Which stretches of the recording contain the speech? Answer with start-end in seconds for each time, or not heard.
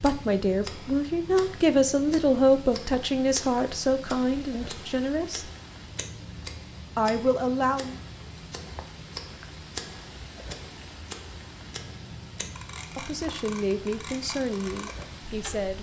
0.0-5.5, 7.0-8.0, 12.9-15.7.